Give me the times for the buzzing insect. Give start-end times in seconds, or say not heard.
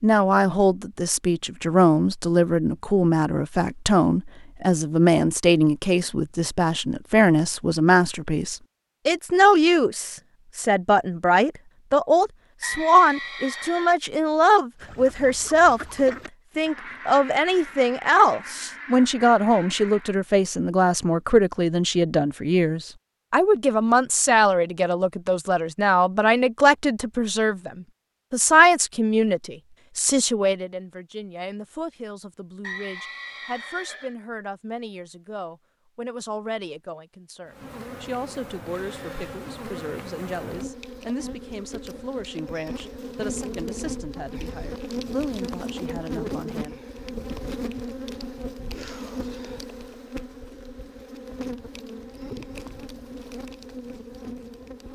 37.5-54.8.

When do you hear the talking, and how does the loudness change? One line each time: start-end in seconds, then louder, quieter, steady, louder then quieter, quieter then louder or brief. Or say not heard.
0.0-46.8 quieter.